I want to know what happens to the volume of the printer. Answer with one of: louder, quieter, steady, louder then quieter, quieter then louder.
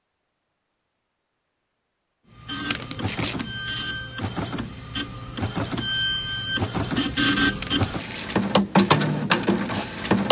louder.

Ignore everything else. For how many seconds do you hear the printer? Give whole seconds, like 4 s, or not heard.
8 s.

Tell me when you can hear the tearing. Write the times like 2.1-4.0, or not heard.
2.7-3.5, 7.6-8.4.